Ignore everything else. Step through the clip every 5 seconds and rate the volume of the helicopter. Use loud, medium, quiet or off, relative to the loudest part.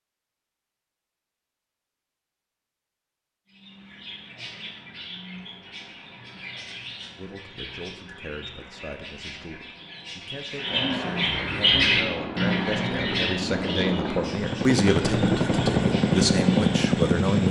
off, off, medium, loud.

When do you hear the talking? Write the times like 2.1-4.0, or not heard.
7.2-17.4.